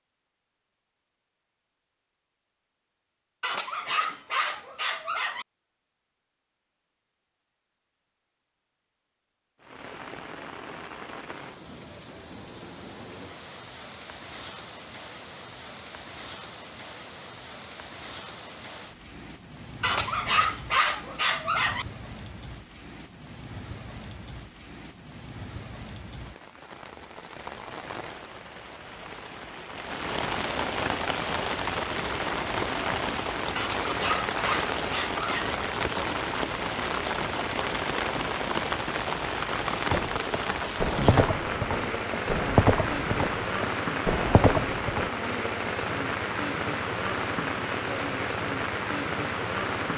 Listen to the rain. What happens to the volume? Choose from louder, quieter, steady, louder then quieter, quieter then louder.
louder.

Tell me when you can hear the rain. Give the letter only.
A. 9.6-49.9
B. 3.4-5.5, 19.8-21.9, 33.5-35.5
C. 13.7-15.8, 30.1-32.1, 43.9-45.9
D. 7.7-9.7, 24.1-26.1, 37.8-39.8
A.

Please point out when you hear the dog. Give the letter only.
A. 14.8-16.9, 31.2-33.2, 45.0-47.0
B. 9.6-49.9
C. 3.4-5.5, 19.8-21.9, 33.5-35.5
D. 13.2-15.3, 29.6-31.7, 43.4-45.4
C.